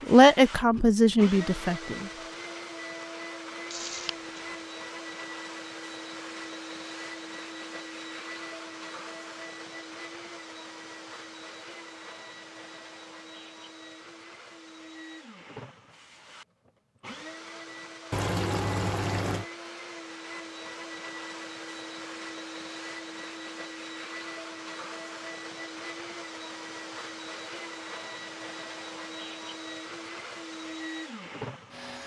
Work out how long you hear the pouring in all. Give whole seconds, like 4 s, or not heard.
2 s.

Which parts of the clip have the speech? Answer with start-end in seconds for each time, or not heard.
0.1-2.0.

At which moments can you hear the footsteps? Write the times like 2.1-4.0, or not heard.
not heard.